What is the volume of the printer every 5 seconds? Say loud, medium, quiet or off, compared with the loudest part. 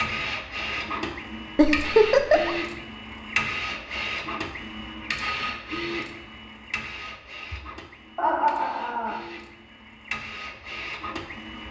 loud, medium, medium.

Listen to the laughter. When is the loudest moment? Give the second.
2 s.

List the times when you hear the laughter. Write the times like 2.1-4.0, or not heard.
1.6-2.5, 8.2-9.2.